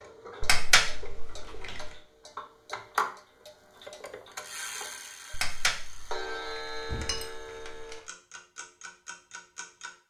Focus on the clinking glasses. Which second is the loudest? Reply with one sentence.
The volume of the clinking glasses peaks at 1 second.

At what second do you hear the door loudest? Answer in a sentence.
The volume of the door peaks at 7 seconds.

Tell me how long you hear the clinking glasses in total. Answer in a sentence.
You can hear the clinking glasses for 4 seconds altogether.